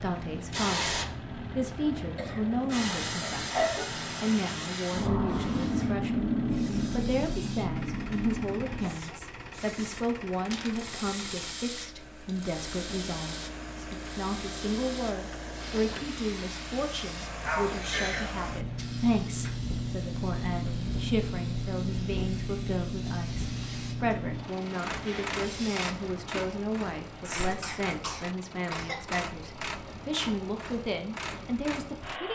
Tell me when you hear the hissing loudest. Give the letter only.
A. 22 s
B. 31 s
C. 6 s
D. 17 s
C.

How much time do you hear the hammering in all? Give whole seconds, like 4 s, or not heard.
not heard.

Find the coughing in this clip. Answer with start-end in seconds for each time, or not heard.
2.1-4.0, 17.4-18.3, 27.2-29.2.